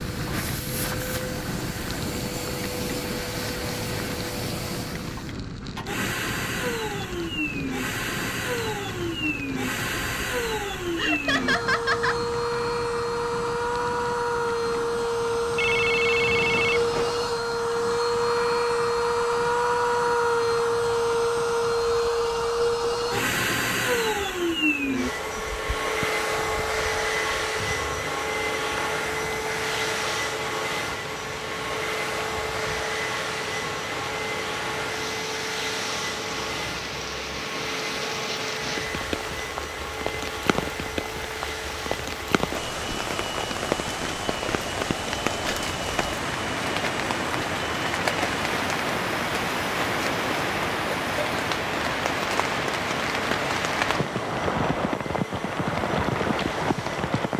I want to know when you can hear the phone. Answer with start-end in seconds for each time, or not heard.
15.6-17.1.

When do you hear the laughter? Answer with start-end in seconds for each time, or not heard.
10.9-12.2.